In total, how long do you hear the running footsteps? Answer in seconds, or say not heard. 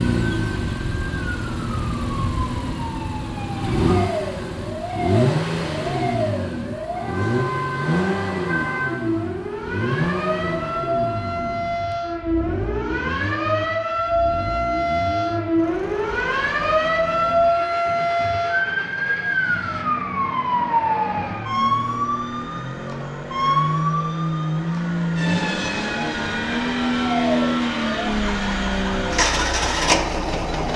not heard.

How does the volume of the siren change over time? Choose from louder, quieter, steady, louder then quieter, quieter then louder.
louder then quieter.